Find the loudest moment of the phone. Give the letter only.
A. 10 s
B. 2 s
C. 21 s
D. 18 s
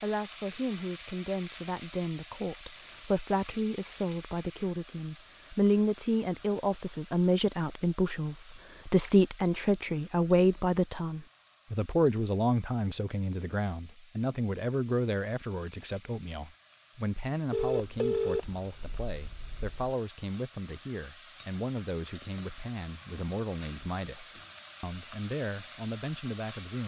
D.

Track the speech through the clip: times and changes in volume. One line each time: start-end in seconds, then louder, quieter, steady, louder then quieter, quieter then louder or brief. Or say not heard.
0.0-26.8 louder then quieter.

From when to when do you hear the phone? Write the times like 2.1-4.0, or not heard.
17.5-19.9.